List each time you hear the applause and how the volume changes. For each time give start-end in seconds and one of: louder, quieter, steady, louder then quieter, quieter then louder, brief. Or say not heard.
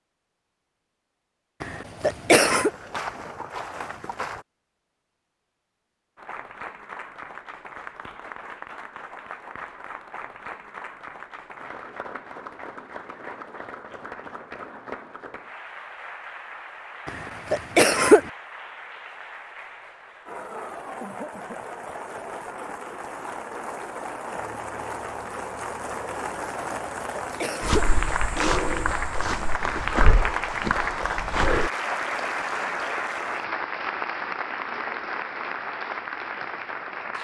6.2-37.1 louder.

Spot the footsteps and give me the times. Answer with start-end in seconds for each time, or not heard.
2.4-4.5, 27.6-31.7.